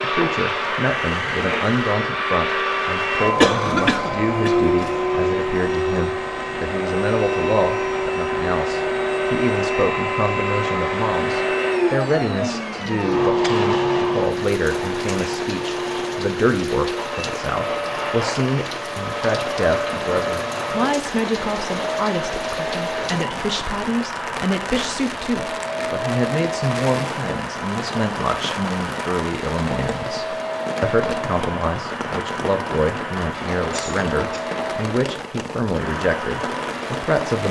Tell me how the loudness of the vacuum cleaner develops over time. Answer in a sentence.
The volume of the vacuum cleaner goes down.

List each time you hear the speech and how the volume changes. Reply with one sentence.
You can hear the speech from 0.0 to 37.4 s, at a steady volume.